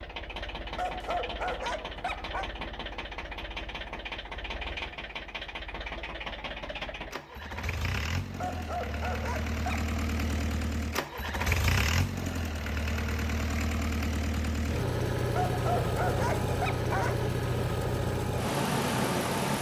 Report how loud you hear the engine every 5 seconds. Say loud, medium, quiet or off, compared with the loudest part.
medium, medium, loud, loud.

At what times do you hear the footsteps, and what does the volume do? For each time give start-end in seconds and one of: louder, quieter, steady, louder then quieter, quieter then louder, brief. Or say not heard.
not heard.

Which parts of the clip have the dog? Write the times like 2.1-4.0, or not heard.
0.8-2.5, 8.4-9.9, 15.3-17.2.